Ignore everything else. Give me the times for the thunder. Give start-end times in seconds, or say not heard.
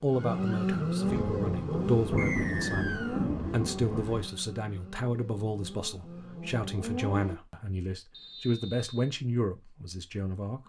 1.0-4.3.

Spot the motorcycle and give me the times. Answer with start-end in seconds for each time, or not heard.
0.1-7.3.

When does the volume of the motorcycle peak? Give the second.
1 s.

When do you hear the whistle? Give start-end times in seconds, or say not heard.
2.1-3.3, 8.1-9.2.